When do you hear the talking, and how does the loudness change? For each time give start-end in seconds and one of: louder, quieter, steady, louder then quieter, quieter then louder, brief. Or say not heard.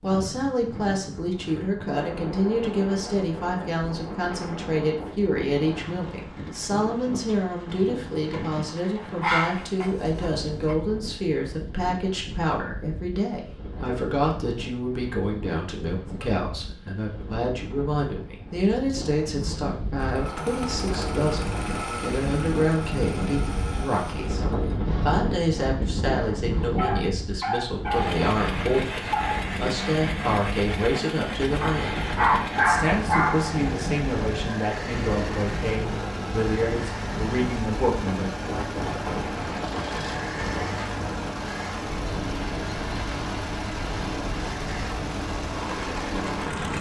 0.0-38.3 steady.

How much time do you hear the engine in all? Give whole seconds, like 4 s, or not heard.
24 s.